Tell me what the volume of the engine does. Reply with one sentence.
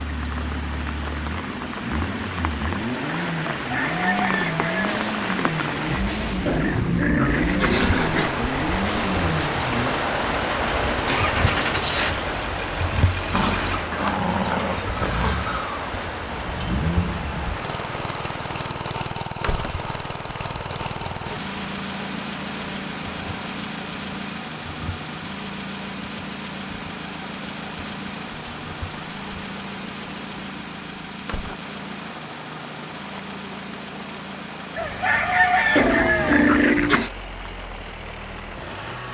The volume of the engine goes down.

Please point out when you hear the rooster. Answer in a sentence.
The rooster can be heard from 3.5 to 4.9 s and from 34.8 to 36.5 s.